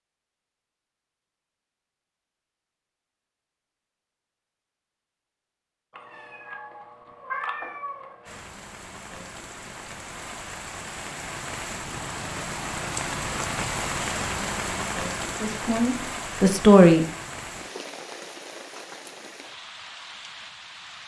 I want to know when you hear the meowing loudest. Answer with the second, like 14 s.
7 s.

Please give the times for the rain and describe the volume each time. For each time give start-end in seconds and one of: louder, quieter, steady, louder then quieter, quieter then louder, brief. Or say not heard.
8.2-21.0 louder then quieter.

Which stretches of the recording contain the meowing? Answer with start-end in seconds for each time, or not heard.
5.9-8.4.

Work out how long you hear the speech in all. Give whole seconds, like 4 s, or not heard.
2 s.